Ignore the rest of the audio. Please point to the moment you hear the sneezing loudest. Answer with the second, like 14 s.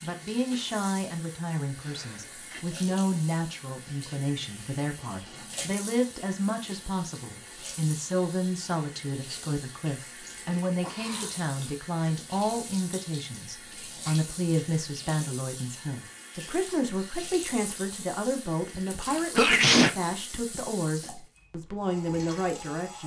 20 s.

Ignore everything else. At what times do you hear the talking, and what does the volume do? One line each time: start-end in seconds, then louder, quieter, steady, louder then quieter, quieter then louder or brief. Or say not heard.
0.0-23.0 steady.